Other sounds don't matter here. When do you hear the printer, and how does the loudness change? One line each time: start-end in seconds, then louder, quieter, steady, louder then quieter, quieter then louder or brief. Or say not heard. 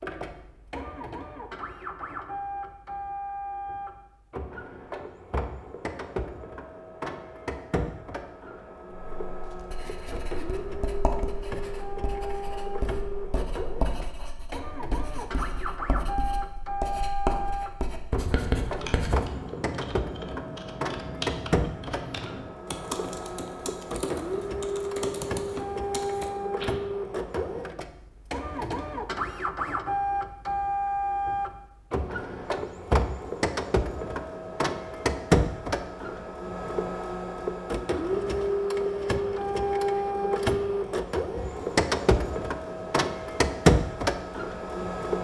0.0-45.1 louder.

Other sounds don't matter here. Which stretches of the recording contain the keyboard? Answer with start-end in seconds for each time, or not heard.
18.8-26.8.